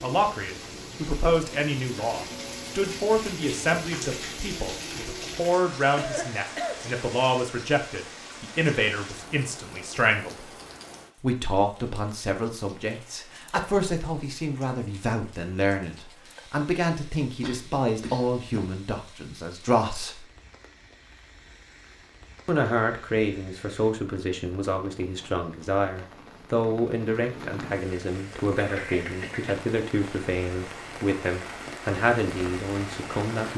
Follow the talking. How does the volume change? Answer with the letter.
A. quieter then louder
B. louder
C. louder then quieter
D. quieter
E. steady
E.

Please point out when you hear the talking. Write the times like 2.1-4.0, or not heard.
0.0-10.5, 11.2-20.2, 22.4-33.5.